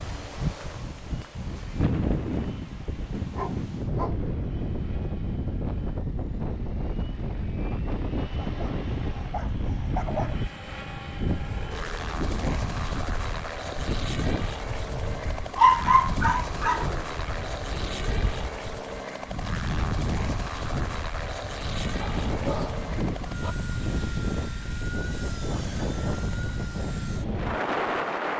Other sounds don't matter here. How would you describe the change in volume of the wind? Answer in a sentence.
The volume of the wind stays about the same.